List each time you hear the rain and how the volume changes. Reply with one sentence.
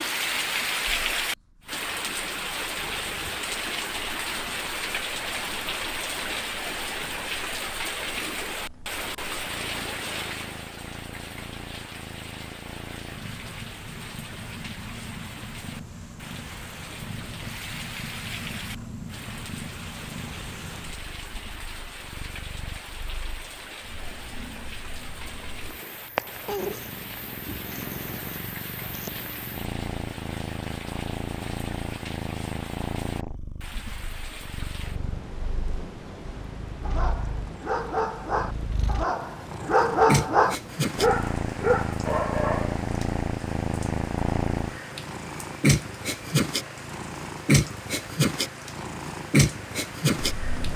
The rain can be heard from 0.0 to 50.7 s, getting quieter.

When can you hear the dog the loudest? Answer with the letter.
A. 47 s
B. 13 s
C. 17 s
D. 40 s
D.